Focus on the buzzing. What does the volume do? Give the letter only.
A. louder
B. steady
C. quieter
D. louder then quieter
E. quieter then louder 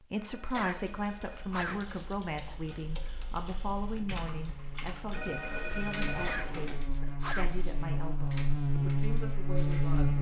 A.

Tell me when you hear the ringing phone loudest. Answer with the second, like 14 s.
6 s.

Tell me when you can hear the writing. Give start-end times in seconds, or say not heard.
not heard.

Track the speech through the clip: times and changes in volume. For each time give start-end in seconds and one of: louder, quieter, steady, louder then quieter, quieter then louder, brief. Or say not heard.
0.1-10.1 quieter.